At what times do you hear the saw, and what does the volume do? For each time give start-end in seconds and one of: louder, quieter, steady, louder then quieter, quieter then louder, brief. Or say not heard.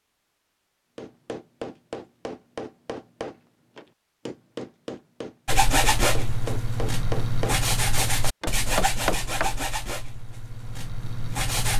5.5-11.7 quieter.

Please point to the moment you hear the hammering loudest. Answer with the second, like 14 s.
9 s.